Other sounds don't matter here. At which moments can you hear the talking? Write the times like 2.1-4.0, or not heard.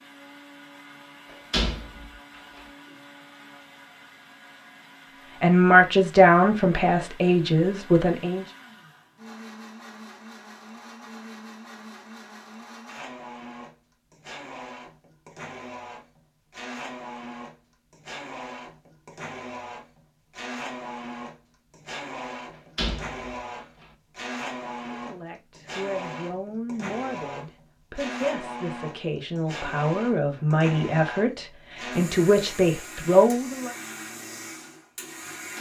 5.4-8.4, 24.9-33.7.